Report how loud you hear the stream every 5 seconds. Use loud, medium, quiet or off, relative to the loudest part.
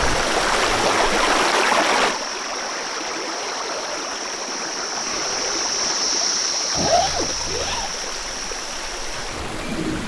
loud, medium.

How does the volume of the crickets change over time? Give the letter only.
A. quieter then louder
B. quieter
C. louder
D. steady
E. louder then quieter
E.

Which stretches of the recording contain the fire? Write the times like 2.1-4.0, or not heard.
not heard.